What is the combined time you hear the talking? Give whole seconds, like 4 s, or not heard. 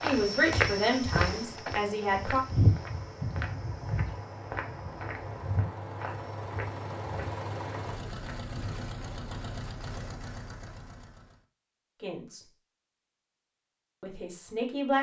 4 s.